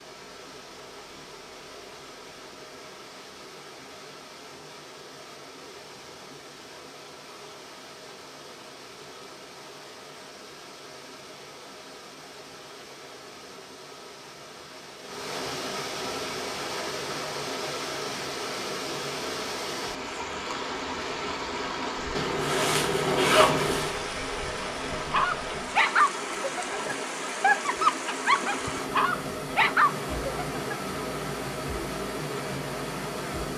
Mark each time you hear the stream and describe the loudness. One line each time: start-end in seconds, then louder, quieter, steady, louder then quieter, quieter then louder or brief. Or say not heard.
0.0-33.5 louder.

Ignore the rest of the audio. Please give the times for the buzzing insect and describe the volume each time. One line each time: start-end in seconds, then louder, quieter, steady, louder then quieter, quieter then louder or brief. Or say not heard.
not heard.